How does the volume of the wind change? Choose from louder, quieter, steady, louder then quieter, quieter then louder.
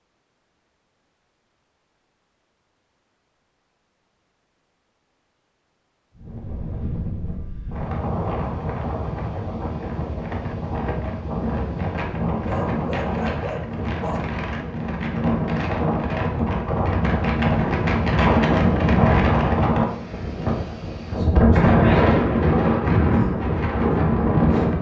louder.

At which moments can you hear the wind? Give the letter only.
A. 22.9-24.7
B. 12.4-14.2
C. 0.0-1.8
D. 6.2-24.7
D.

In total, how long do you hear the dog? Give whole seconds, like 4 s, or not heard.
2 s.